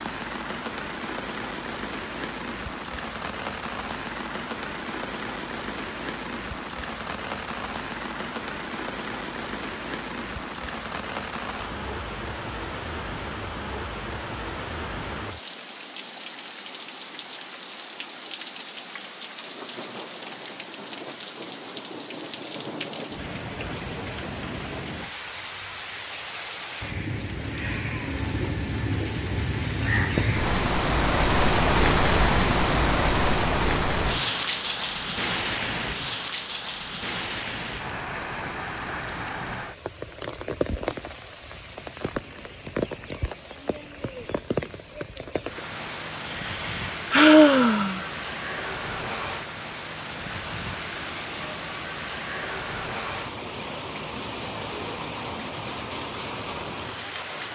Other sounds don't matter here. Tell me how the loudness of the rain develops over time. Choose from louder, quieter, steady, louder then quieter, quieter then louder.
louder then quieter.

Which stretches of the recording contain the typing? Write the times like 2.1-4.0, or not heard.
not heard.